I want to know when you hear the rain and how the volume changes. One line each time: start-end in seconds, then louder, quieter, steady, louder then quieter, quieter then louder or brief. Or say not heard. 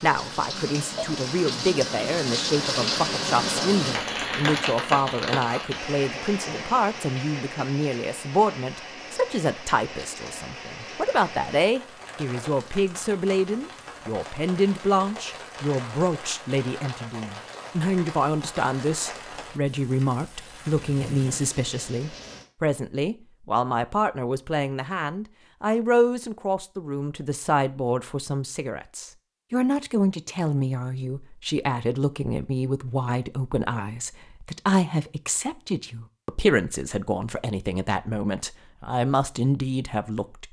0.0-22.4 quieter.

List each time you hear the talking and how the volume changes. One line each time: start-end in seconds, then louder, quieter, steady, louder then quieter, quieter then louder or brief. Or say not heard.
0.0-40.4 steady.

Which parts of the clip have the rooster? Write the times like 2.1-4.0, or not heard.
not heard.